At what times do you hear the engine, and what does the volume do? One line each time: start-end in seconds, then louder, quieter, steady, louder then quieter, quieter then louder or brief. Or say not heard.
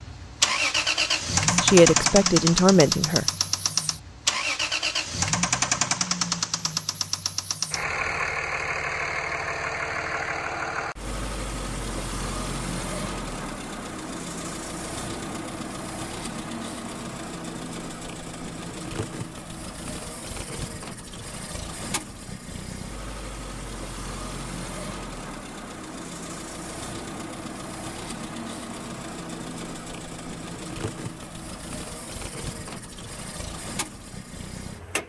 0.0-35.0 quieter.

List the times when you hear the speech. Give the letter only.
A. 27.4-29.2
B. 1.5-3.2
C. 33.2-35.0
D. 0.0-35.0
B.